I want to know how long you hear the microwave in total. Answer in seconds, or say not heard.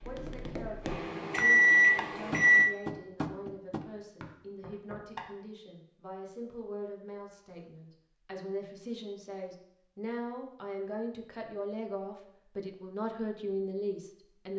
3 s.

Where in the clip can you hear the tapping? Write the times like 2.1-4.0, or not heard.
0.0-5.3.